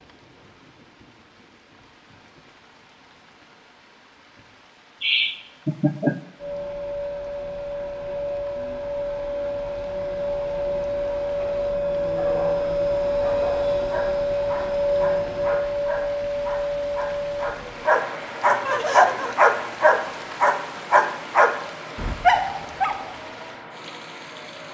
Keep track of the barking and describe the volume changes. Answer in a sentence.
The loudness of the barking goes up.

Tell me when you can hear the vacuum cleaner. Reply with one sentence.
You can hear the vacuum cleaner from 6.3 to 24.6 s.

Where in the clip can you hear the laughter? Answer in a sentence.
You can hear the laughter from 5.0 to 6.2 s and from 18.6 to 19.4 s.